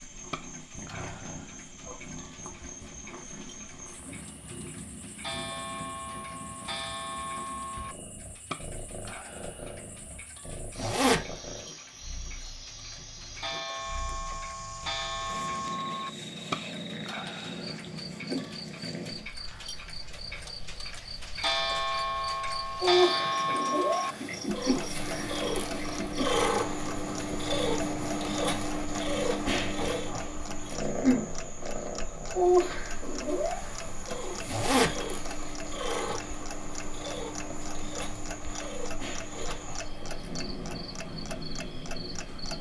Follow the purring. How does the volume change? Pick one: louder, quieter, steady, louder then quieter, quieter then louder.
louder then quieter.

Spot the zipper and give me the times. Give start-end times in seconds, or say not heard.
10.8-11.3, 34.5-35.0.